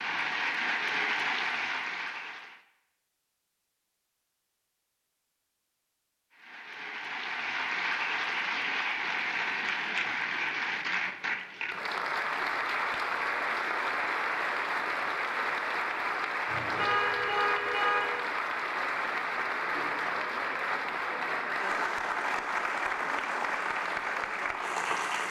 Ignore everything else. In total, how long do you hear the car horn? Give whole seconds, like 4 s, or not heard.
2 s.